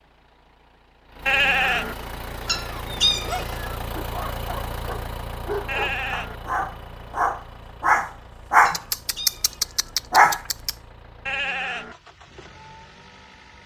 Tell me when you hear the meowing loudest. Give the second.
3 s.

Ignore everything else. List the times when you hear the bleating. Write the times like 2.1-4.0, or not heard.
1.2-1.9, 5.7-6.3, 11.2-11.9.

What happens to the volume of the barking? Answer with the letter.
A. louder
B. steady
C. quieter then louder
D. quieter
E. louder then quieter
A.